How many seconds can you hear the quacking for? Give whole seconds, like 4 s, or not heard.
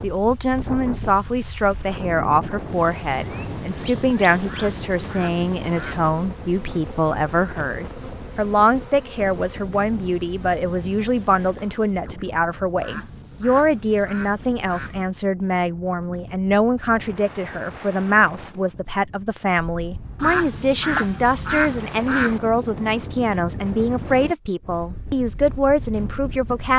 6 s.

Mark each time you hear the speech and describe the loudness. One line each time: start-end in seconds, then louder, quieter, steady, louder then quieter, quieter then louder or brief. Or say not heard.
0.0-26.7 steady.